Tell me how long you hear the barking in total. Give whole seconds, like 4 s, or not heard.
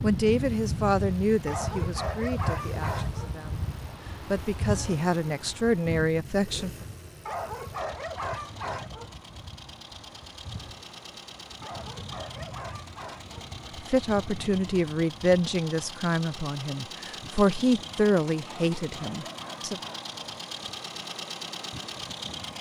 7 s.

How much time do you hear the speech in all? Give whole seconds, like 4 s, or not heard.
13 s.